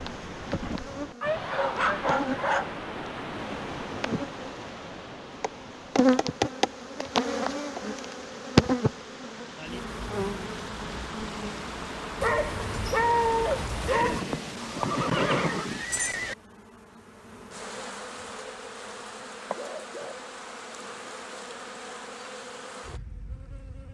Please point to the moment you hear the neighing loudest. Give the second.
15 s.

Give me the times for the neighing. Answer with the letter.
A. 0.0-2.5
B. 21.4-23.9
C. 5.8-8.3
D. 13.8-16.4
D.